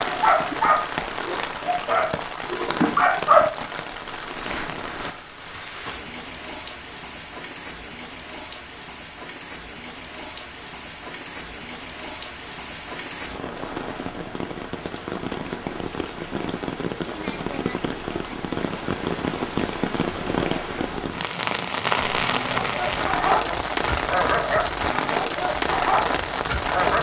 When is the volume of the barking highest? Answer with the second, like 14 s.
3 s.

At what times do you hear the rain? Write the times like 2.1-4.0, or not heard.
0.0-26.9.